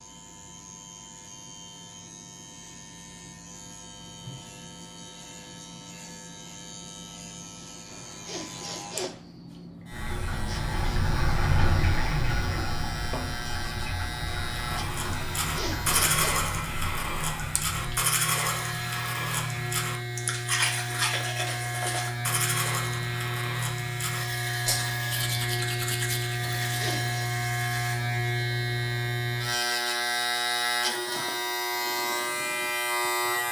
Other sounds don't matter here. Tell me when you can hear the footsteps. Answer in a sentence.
The footsteps can't be heard in this clip.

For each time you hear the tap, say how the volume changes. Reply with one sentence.
You can hear the tap from 9.9 to 17.9 s, getting quieter.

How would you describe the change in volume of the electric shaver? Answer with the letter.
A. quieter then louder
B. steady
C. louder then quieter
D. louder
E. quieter
D.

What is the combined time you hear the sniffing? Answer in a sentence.
The sniffing can be heard for 3 seconds in total.